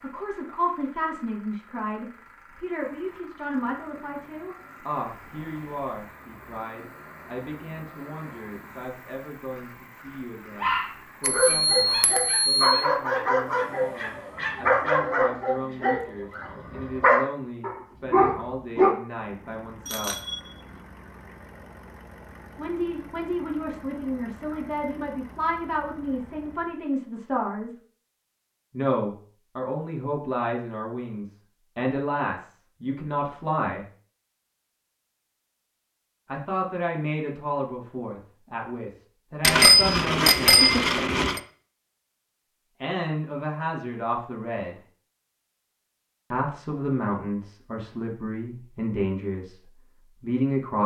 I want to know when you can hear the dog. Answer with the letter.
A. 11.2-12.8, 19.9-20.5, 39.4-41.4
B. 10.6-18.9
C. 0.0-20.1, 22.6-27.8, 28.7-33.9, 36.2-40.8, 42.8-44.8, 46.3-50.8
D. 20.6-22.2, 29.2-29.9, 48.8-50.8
B.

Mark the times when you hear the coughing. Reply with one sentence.
You can't hear the coughing here.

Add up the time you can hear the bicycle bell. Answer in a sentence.
The bicycle bell can be heard for 4 seconds in total.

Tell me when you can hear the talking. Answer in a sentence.
The talking can be heard from 0.0 to 20.1 s, from 22.6 to 27.8 s, from 28.7 to 33.9 s, from 36.2 to 40.8 s, from 42.8 to 44.8 s and from 46.3 to 50.8 s.